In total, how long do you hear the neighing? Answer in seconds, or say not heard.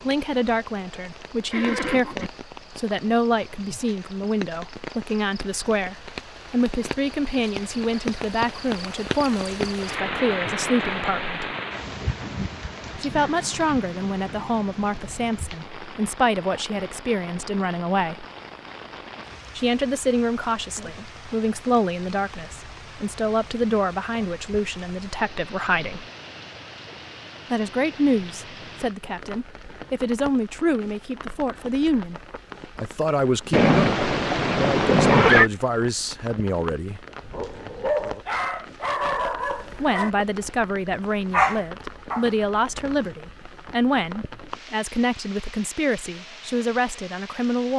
3 s.